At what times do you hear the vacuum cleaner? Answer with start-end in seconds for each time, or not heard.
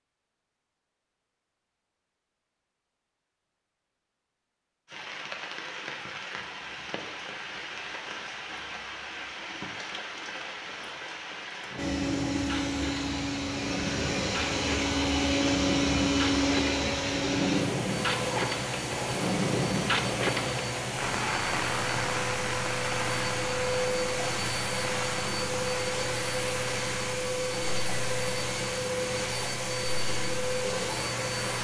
11.8-31.5.